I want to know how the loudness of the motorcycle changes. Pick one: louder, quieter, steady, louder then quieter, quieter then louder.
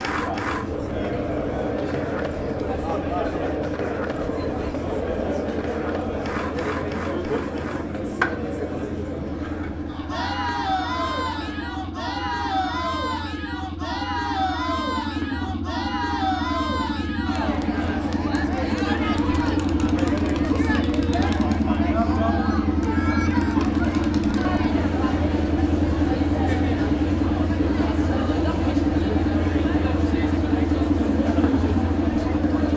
louder.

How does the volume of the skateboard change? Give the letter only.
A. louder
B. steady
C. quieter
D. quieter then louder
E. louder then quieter
C.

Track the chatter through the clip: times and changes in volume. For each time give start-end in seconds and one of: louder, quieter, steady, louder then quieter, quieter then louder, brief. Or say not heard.
0.0-32.7 steady.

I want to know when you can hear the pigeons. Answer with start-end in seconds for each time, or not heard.
not heard.